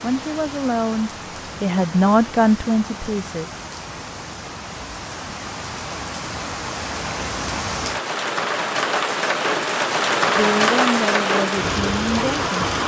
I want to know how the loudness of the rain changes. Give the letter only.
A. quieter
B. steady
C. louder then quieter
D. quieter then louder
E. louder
E.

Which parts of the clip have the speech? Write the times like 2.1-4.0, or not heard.
0.0-3.5, 10.3-12.8.